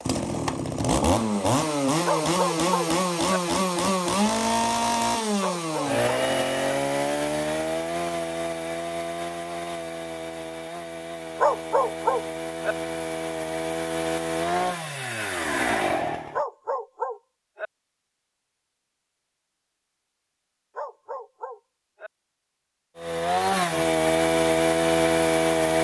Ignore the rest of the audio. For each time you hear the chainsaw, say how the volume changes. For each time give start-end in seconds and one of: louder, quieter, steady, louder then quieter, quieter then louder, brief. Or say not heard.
0.0-16.4 quieter then louder
22.9-25.7 brief.